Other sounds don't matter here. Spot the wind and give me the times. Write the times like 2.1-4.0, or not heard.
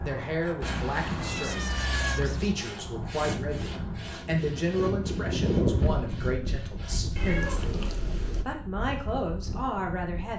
0.0-10.3.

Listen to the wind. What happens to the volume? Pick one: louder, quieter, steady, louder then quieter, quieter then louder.
louder then quieter.